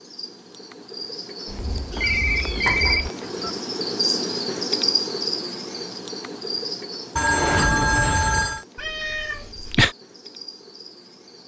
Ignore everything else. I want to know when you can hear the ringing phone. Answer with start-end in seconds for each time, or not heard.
1.9-3.5, 7.2-8.7.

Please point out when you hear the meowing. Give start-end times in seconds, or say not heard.
1.4-3.1, 8.8-9.9.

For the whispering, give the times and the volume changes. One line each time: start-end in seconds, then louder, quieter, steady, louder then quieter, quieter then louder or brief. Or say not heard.
not heard.